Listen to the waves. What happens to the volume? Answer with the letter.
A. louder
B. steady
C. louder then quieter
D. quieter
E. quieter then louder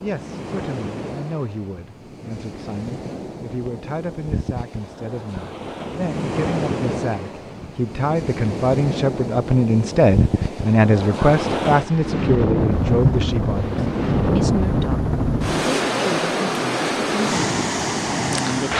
A.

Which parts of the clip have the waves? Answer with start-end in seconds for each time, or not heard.
0.0-18.7.